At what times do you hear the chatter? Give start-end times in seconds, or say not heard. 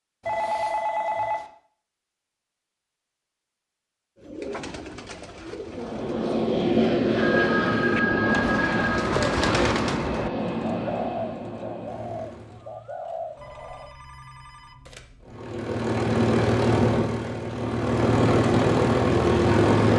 not heard.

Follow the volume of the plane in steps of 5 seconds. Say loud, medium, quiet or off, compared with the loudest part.
off, loud, medium, loud.